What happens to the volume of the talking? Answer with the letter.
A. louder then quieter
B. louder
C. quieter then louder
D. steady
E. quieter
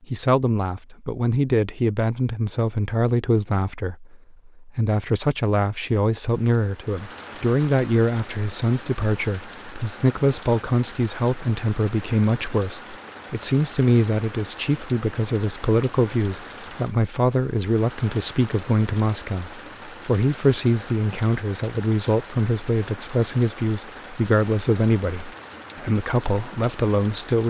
D.